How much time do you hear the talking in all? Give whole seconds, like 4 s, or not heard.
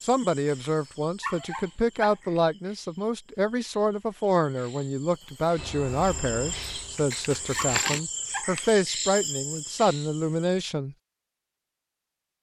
11 s.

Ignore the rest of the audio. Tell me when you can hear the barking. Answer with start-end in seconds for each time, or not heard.
1.2-2.1, 7.5-8.5.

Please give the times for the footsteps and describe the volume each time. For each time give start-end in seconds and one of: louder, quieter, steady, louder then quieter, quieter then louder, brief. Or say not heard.
not heard.